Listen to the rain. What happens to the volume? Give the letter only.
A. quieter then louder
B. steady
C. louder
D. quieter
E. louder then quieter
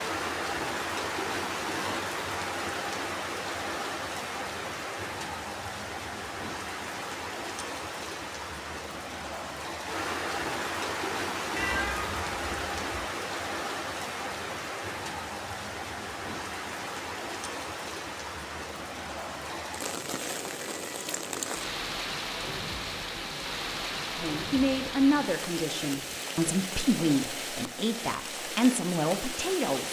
B.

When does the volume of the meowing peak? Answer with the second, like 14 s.
12 s.